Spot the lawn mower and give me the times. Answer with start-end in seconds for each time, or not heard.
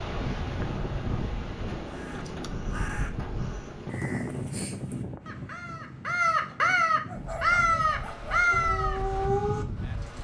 not heard.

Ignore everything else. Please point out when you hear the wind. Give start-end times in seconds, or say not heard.
0.0-10.1.